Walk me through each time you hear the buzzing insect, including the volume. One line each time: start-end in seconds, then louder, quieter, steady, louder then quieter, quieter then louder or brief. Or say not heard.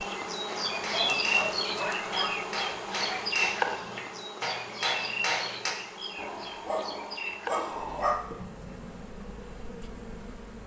0.0-10.6 quieter.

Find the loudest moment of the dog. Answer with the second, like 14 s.
8 s.